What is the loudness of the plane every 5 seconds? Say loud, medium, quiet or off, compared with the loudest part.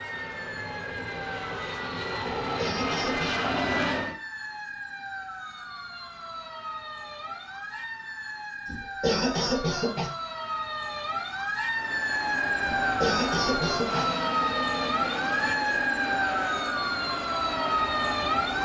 loud, off, loud, loud.